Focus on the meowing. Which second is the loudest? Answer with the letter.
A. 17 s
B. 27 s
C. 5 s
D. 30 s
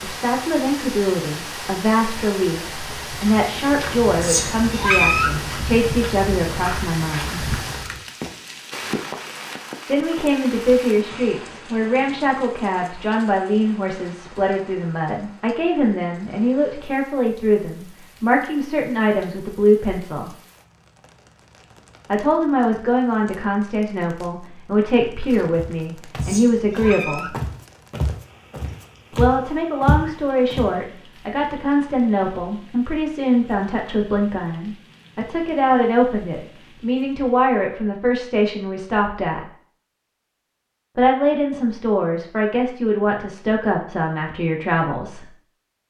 C.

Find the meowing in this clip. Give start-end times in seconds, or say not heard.
4.2-5.4, 26.2-27.4.